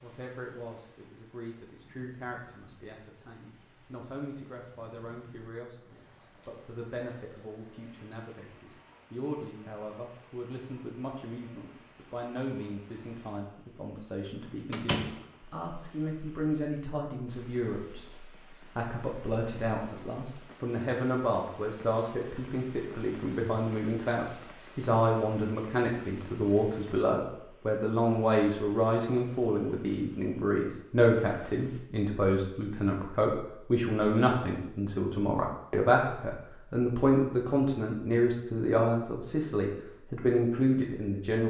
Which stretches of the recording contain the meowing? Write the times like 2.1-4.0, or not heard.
not heard.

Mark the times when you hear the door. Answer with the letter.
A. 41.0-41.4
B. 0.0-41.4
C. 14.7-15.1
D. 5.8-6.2
C.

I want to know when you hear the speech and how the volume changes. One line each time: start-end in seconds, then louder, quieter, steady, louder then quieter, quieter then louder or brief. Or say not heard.
0.0-41.4 louder.